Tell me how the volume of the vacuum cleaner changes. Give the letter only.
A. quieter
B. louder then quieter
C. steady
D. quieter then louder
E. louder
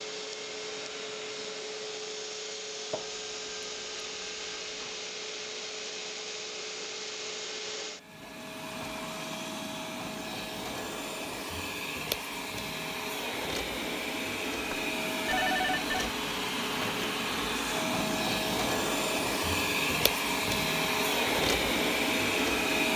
E.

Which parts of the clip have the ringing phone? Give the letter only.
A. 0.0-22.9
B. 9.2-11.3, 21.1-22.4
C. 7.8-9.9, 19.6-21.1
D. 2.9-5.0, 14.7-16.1
D.